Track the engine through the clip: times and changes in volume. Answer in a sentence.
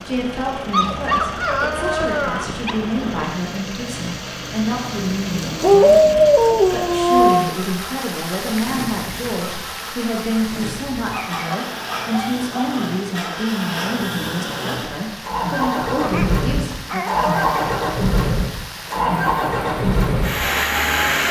The engine can be heard from 0.0 to 21.2 s, getting louder.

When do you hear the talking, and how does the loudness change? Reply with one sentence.
The talking can be heard from 0.1 to 17.1 s, at a steady volume.